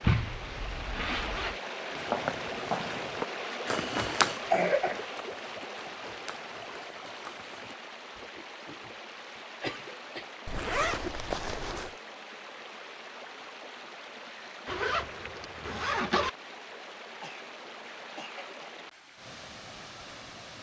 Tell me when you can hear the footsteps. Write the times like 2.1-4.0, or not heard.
1.9-8.3.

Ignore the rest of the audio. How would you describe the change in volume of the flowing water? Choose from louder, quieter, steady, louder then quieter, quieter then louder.
quieter.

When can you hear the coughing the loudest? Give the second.
5 s.